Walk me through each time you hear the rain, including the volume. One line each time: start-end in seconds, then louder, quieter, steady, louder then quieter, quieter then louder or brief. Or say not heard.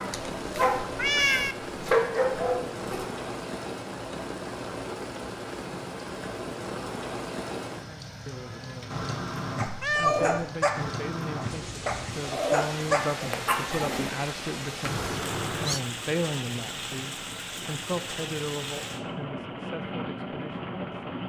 0.0-21.2 steady.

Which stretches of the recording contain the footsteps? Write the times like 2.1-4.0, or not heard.
not heard.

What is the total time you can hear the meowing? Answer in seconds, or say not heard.
3 s.